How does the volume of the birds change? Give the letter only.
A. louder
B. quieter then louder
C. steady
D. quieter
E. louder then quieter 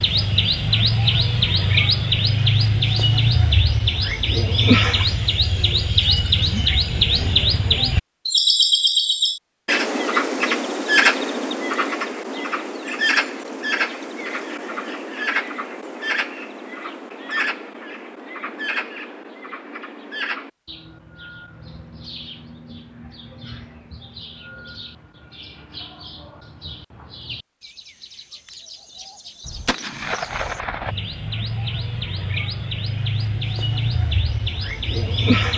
B.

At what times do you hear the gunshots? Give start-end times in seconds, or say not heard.
29.4-30.9.